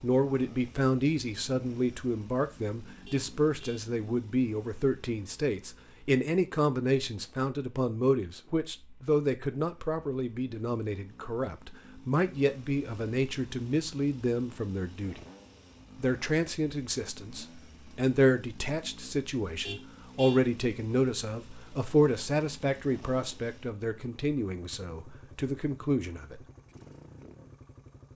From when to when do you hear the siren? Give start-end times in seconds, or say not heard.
not heard.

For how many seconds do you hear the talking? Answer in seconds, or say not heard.
26 s.